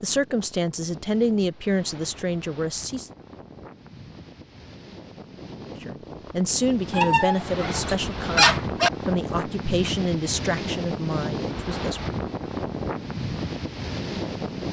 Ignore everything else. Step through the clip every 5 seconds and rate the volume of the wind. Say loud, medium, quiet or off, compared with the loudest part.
quiet, loud, loud.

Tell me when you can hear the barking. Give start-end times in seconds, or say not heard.
6.9-8.9.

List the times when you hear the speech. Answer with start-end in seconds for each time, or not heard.
0.0-3.1, 5.8-12.2.